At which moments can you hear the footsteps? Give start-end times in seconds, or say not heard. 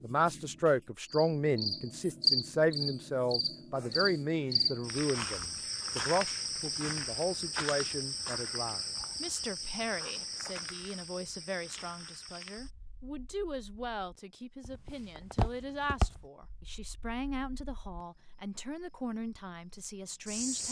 14.7-16.2.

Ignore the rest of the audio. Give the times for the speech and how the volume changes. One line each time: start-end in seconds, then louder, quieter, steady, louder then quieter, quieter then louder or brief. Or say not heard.
0.0-20.6 quieter.